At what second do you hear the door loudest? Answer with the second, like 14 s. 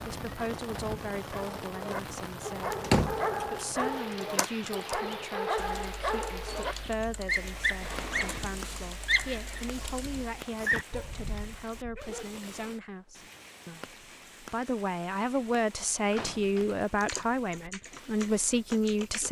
3 s.